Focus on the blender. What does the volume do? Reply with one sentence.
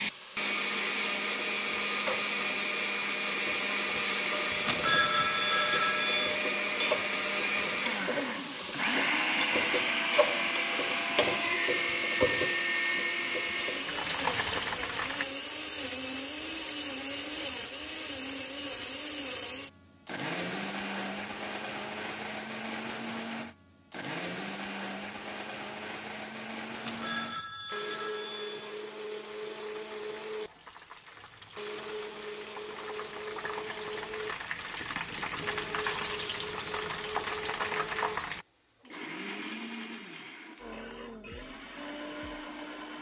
The volume of the blender goes down.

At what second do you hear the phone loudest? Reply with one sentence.
The loudest moment of the phone is at 5 seconds.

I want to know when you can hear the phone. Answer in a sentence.
The phone can be heard from 4.6 to 6.3 s and from 26.8 to 28.8 s.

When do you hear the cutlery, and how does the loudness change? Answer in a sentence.
You can't hear the cutlery here.